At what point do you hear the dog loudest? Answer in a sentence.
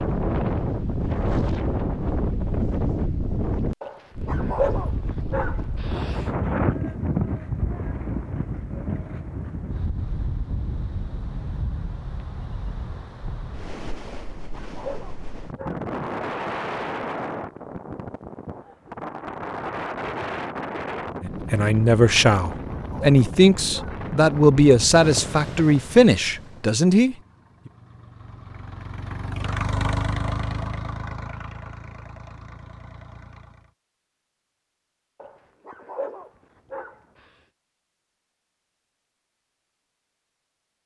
The loudest moment of the dog is at 5 seconds.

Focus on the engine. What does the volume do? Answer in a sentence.
The volume of the engine goes up, then down.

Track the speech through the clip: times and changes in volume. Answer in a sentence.
The speech can be heard from 21.2 to 27.1 s, at a steady volume.